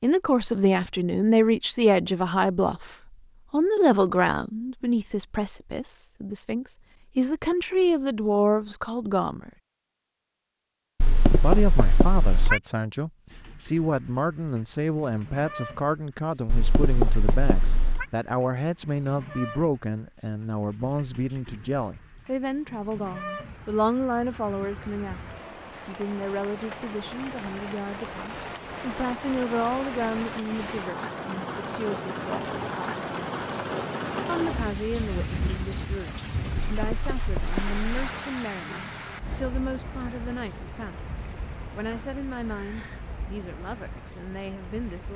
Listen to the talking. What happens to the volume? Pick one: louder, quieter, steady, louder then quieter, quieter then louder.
quieter.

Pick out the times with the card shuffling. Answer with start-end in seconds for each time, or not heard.
not heard.